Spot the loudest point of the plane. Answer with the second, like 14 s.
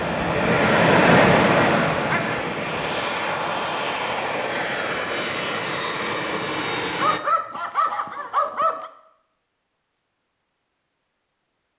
1 s.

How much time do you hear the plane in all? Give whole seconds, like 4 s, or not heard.
7 s.